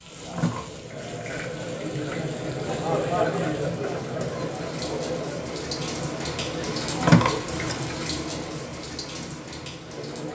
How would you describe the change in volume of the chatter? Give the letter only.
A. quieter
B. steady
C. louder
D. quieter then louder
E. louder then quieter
E.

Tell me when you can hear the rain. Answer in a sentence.
The rain can be heard from 0.0 to 10.3 s.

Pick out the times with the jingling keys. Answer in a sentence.
The jingling keys can be heard from 0.3 to 2.3 s and from 7.0 to 8.0 s.